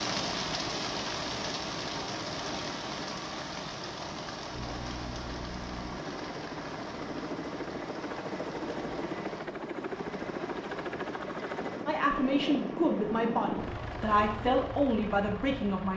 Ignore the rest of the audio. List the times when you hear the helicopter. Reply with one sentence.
You can hear the helicopter from 4.5 to 15.9 s.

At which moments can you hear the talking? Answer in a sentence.
The talking can be heard from 11.8 to 15.9 s.